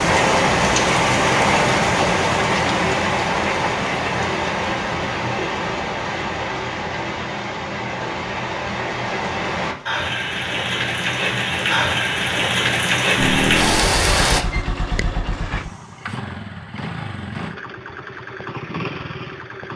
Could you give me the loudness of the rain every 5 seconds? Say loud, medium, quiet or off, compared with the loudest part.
loud, medium, loud, off.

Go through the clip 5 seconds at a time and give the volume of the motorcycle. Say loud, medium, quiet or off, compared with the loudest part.
off, off, loud, medium.